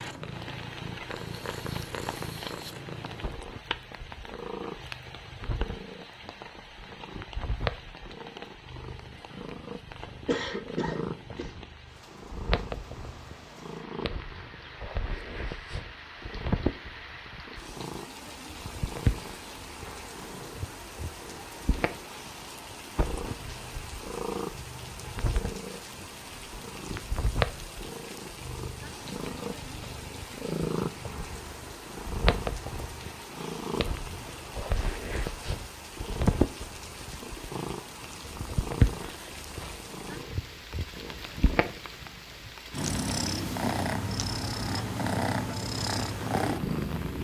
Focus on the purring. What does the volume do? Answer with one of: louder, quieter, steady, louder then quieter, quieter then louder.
louder.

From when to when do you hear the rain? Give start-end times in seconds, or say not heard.
0.0-47.1.